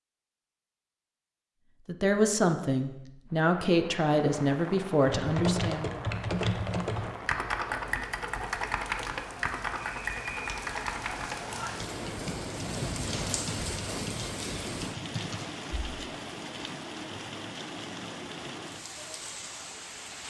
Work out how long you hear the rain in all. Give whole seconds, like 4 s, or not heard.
17 s.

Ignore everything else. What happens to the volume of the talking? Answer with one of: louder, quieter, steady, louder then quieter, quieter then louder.
steady.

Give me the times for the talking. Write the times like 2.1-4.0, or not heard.
1.9-6.0.